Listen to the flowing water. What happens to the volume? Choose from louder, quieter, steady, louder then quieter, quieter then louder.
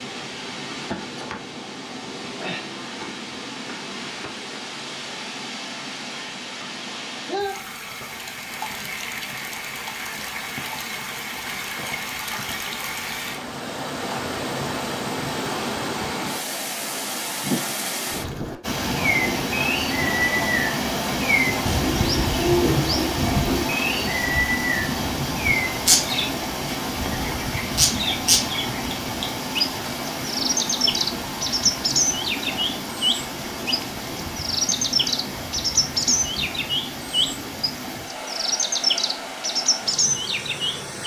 louder then quieter.